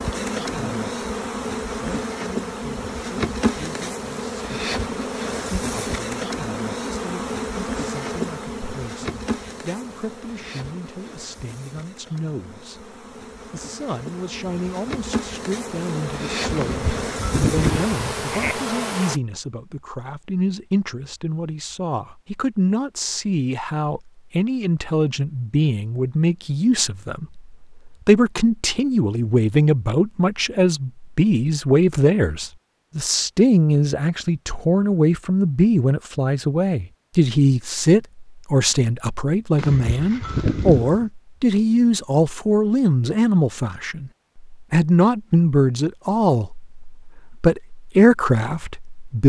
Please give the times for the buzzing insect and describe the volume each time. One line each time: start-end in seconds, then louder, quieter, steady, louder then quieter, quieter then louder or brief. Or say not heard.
0.0-19.2 quieter then louder.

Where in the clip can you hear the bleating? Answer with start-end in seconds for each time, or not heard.
16.6-18.6, 39.5-41.0.